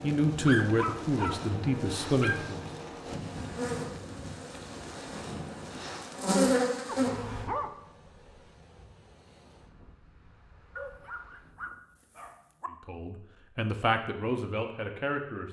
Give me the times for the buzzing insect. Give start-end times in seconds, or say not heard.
0.1-7.5.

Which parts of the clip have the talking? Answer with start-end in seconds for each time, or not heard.
0.0-2.6, 12.8-15.4.